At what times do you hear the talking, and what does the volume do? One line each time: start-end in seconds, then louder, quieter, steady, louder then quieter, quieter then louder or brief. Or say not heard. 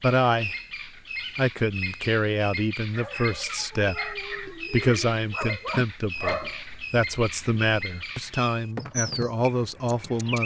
0.0-0.6 brief
1.4-10.4 steady.